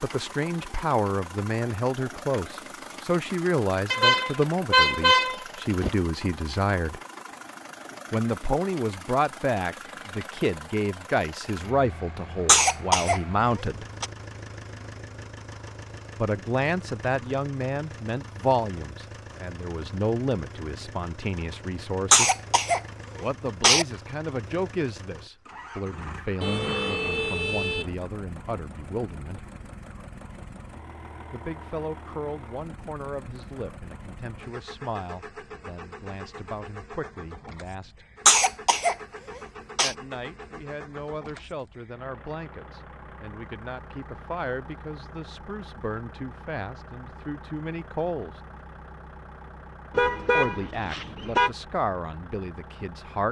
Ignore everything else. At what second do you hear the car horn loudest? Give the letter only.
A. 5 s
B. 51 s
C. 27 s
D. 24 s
A.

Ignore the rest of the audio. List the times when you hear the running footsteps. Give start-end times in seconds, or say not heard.
not heard.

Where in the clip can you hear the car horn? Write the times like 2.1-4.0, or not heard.
3.9-5.9, 26.4-27.9, 49.9-51.5.